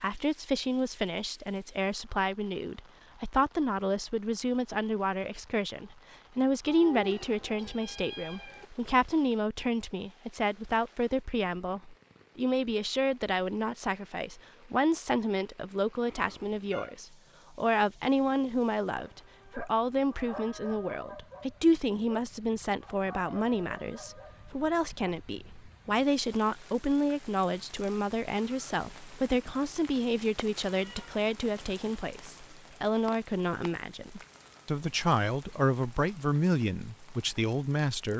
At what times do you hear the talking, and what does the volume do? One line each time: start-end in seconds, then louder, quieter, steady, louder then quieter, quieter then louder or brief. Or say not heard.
0.0-38.1 steady.